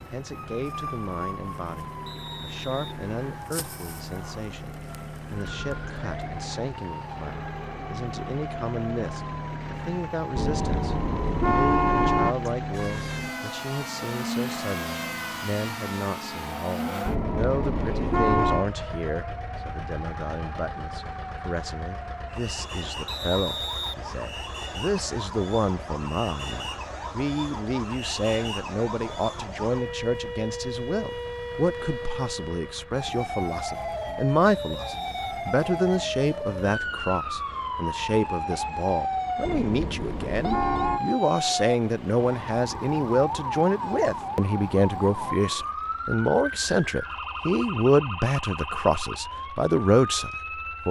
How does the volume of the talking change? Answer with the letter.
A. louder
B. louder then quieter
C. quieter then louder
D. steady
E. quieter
A.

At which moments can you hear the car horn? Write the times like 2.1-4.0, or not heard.
10.3-12.3, 17.1-18.6, 39.4-41.0.